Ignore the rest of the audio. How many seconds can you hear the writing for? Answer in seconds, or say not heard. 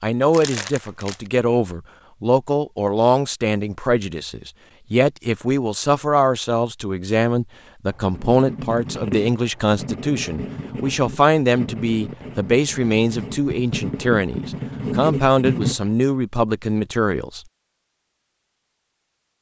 8 s.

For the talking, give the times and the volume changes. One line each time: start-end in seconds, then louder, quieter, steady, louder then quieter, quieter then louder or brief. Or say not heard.
0.0-17.4 steady.